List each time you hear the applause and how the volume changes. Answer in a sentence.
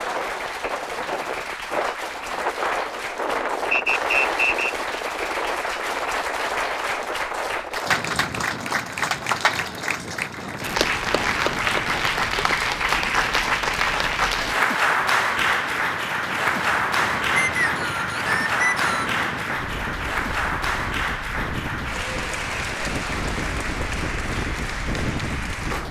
You can hear the applause from 0.0 to 25.8 s, getting louder then quieter.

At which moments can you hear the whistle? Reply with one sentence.
You can hear the whistle from 3.7 to 4.8 s and from 17.4 to 19.1 s.